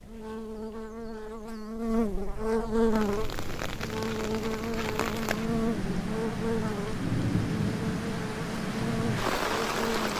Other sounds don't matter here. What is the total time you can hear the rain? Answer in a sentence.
You can hear the rain for 7 seconds altogether.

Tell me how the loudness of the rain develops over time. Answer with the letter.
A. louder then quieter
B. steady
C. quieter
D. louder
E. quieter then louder
D.